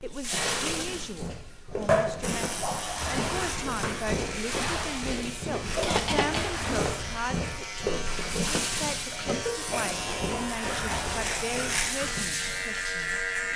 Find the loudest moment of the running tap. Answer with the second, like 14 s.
2 s.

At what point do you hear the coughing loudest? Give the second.
6 s.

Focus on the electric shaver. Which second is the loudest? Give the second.
13 s.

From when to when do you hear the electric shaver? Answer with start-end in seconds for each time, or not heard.
2.2-13.5.